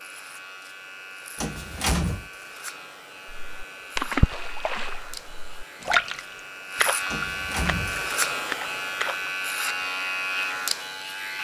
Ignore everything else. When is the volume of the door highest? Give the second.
2 s.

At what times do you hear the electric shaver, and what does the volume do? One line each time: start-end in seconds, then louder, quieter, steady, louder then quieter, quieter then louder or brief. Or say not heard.
0.0-11.3 louder.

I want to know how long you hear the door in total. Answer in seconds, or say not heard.
2 s.